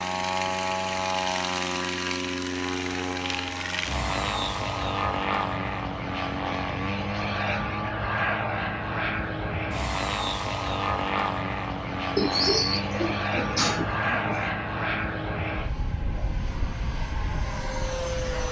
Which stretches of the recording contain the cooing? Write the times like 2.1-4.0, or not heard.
12.2-14.6.